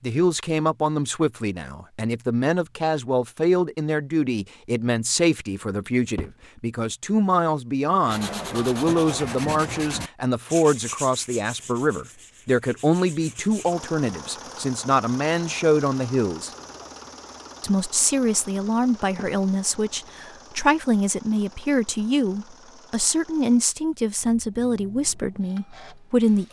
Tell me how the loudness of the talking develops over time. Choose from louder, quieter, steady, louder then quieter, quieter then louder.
steady.